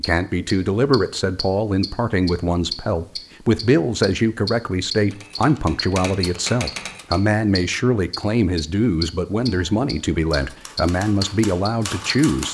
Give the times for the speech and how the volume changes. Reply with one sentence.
You can hear the speech from 0.0 to 12.4 s, at a steady volume.